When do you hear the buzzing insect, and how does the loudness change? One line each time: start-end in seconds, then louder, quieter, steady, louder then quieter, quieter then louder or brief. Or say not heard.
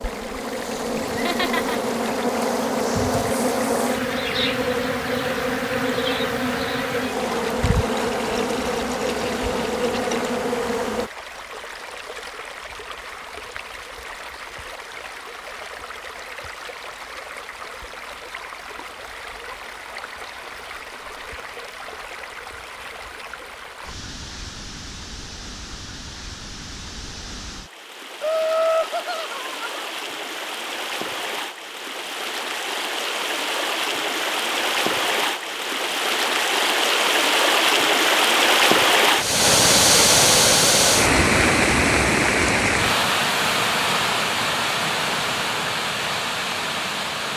0.0-11.1 steady.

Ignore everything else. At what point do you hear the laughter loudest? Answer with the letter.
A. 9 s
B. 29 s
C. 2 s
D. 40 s
B.